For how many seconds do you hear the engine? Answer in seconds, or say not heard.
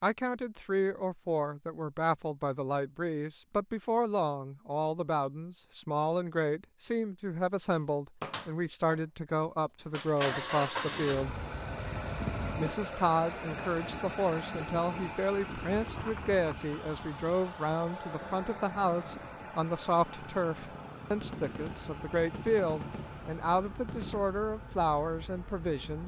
16 s.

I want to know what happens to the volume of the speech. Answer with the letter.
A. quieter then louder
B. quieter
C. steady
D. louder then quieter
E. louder
C.